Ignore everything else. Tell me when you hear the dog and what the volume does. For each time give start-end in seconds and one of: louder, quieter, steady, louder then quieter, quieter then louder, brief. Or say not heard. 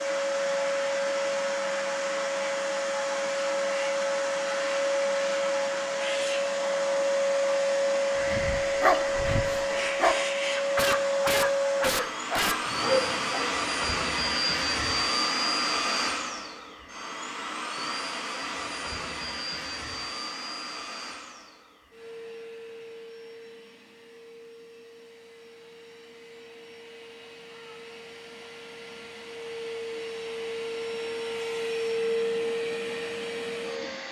8.2-13.5 steady.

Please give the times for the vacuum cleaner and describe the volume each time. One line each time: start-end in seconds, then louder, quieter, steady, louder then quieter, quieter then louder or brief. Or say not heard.
0.0-34.0 quieter then louder.